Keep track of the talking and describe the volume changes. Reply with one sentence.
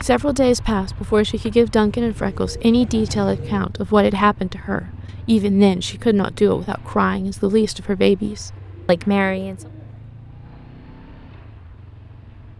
The volume of the talking stays about the same.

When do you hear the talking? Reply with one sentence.
You can hear the talking from 0.0 to 9.6 s.